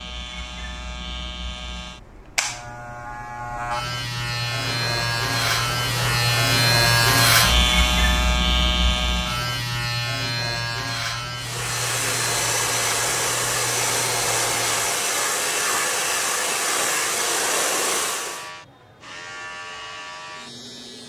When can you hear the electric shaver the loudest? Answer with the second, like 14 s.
7 s.